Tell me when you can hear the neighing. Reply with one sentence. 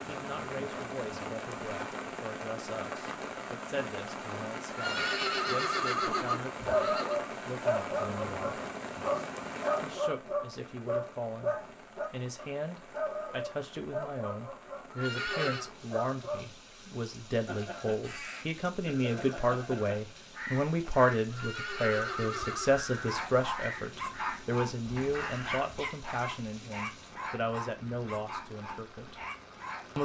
You can hear the neighing from 4.7 to 7.2 s, from 14.9 to 15.7 s and from 21.3 to 22.8 s.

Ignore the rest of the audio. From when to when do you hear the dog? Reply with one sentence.
The dog can be heard from 6.7 to 16.5 s and from 22.9 to 30.0 s.